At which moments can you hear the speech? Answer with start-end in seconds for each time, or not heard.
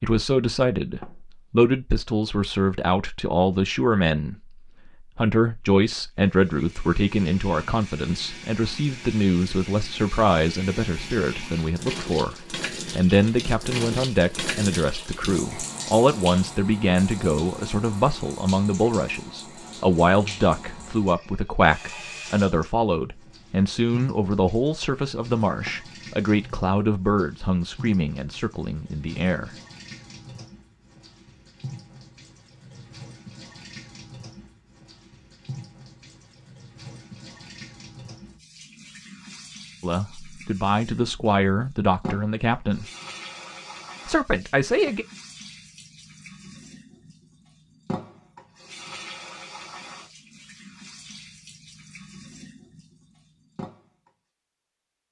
0.0-4.3, 5.2-29.5, 39.8-42.9, 44.0-45.0.